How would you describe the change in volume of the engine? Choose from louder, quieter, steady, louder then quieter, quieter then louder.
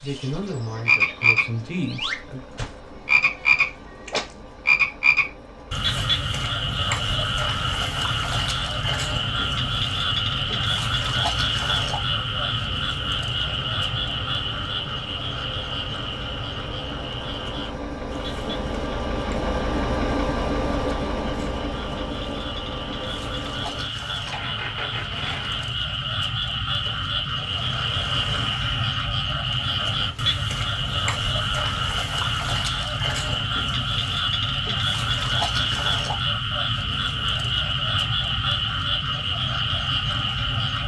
louder then quieter.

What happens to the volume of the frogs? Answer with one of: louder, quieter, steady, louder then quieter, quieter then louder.
quieter then louder.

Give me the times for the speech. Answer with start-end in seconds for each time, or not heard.
0.0-2.4.